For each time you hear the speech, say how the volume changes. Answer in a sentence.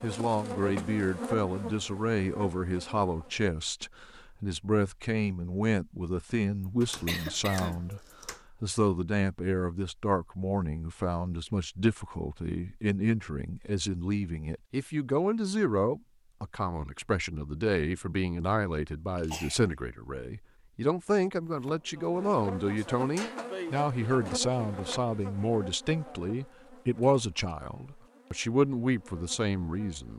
You can hear the speech from 0.0 to 30.1 s, at a steady volume.